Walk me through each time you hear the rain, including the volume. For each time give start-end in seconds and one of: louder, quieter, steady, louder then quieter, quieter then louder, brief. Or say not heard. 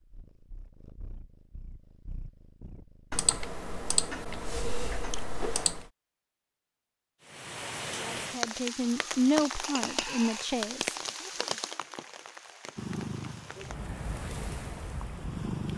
7.2-15.7 quieter then louder.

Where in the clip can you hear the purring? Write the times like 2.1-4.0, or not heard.
0.0-3.3, 12.8-15.7.